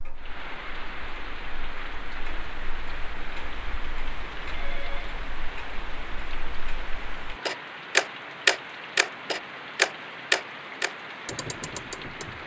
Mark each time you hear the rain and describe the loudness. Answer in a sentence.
The rain can be heard from 0.1 to 12.4 s, at a steady volume.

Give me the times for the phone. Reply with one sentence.
The phone can be heard from 4.5 to 5.2 s.